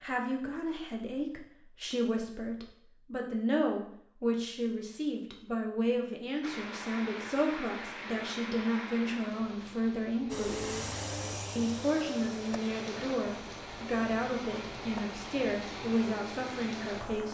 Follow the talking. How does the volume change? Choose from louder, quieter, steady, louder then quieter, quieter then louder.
steady.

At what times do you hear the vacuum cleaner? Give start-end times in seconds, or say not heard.
10.3-17.2.